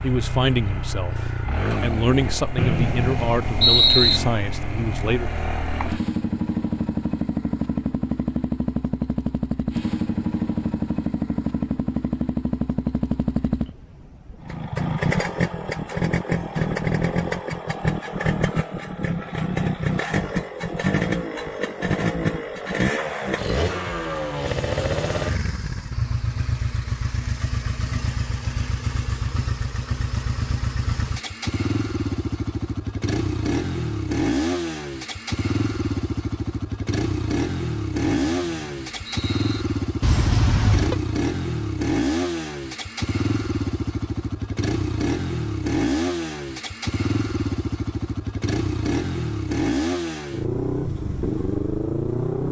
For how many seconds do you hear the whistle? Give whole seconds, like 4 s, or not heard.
3 s.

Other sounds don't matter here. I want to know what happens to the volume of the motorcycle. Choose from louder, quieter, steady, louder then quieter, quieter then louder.
steady.